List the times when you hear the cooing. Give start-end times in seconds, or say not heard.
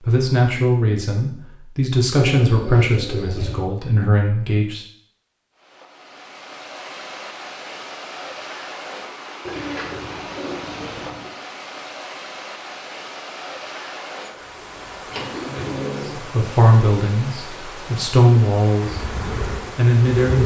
2.1-3.7, 9.4-11.3, 15.1-16.3.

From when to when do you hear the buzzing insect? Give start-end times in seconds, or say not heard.
18.8-20.4.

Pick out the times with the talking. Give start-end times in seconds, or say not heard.
0.1-4.8, 16.3-19.1, 19.8-20.4.